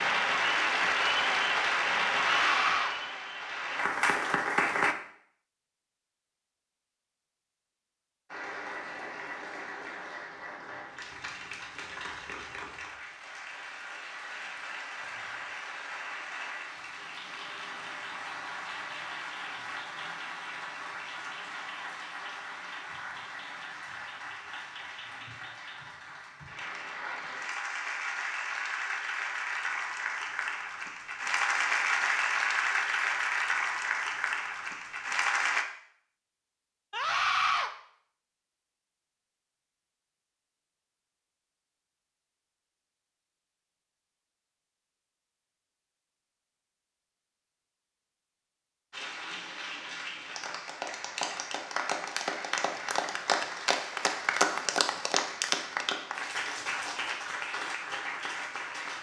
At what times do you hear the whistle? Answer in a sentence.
You can't hear the whistle here.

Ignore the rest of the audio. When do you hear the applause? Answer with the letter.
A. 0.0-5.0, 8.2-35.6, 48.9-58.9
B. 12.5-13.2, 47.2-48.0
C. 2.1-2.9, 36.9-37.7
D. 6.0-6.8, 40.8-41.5
A.